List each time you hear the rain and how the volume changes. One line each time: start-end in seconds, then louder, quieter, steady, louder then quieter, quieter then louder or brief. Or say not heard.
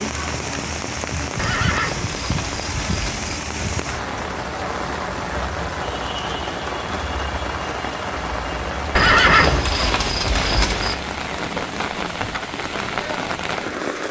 0.0-14.0 steady.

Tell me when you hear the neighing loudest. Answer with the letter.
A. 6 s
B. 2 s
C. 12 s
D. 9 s
D.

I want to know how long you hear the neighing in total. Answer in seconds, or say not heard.
4 s.